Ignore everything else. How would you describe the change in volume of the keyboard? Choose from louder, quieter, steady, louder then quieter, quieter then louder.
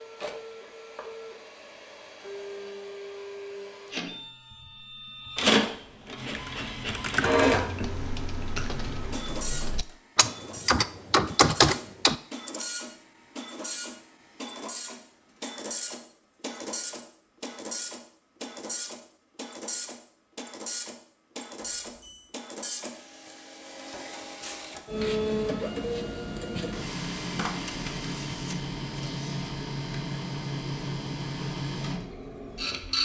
quieter then louder.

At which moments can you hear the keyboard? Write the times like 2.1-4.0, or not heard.
6.3-12.8.